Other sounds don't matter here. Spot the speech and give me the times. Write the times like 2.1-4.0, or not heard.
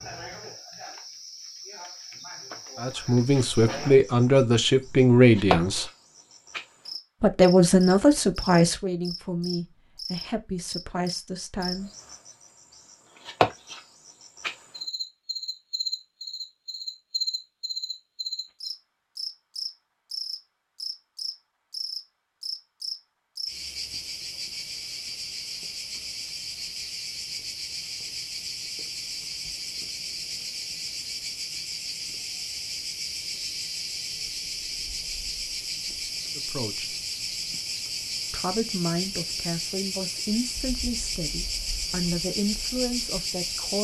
2.8-5.8, 7.2-11.9, 36.4-37.0, 38.3-43.7.